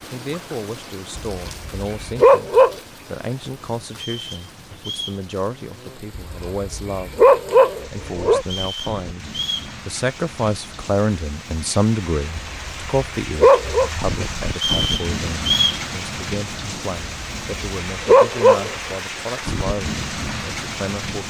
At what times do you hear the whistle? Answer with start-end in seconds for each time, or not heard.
3.9-5.2, 8.4-9.7, 14.6-15.8.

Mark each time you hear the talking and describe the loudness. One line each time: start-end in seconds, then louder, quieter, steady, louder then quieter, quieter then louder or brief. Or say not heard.
0.0-21.2 louder then quieter.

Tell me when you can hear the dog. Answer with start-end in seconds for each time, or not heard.
1.1-2.8, 6.2-8.4, 12.3-13.9, 17.0-18.9.